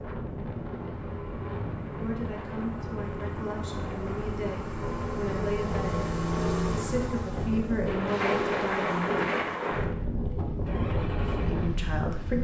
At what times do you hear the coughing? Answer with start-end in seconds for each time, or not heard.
not heard.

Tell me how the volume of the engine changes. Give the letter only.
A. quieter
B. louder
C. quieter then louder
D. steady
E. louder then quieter
E.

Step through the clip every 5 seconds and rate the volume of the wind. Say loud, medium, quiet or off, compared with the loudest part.
medium, loud, loud.